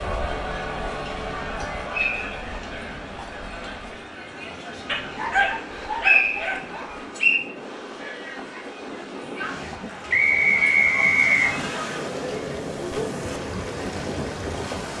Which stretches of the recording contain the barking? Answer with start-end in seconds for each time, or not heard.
4.8-7.0.